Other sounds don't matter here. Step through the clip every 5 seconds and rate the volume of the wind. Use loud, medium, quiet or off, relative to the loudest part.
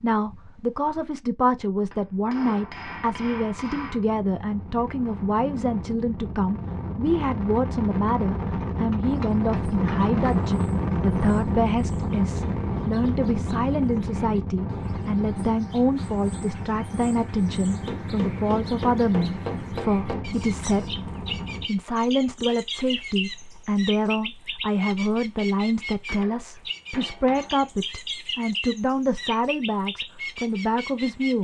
quiet, loud, loud, medium, medium, off, off.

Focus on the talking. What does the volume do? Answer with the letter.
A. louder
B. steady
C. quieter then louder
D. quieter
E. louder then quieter
B.